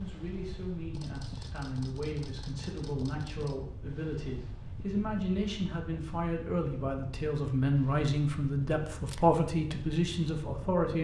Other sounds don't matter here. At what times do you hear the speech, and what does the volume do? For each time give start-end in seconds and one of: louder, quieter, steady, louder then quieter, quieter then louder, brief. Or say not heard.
0.0-10.9 louder.